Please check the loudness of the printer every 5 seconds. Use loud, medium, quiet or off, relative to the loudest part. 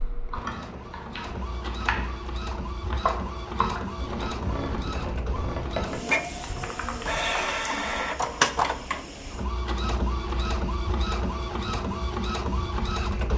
medium, loud, loud.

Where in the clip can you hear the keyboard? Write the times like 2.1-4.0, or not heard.
0.3-7.5.